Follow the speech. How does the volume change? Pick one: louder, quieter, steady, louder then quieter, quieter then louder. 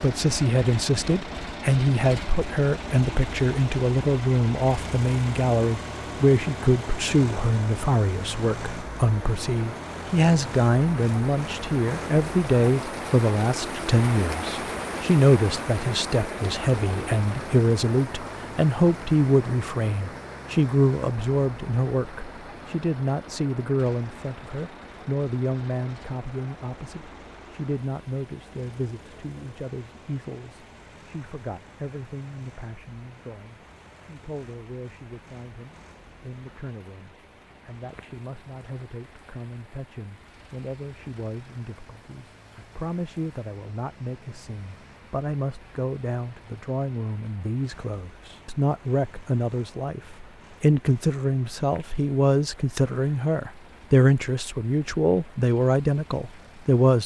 quieter then louder.